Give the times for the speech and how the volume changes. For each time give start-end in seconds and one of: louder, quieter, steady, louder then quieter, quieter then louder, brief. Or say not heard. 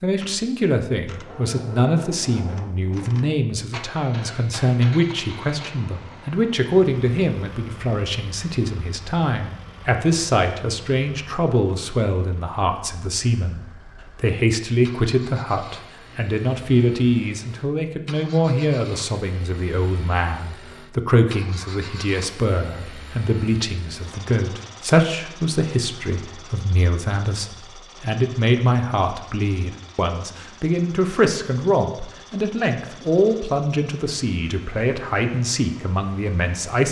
0.0-36.8 steady.